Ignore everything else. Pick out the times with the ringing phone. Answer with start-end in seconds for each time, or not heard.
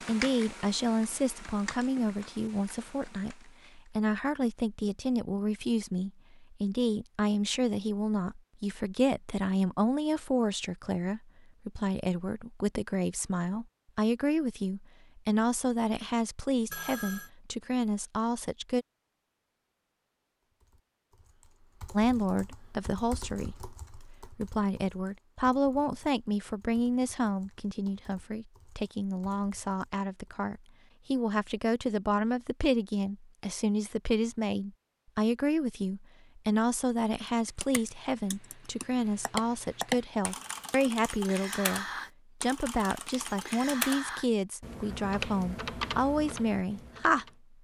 16.7-17.3.